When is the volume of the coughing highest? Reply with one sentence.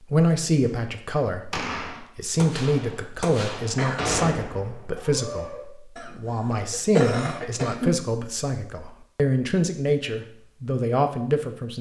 The volume of the coughing peaks at 7 seconds.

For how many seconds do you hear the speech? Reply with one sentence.
The speech can be heard for 12 seconds in total.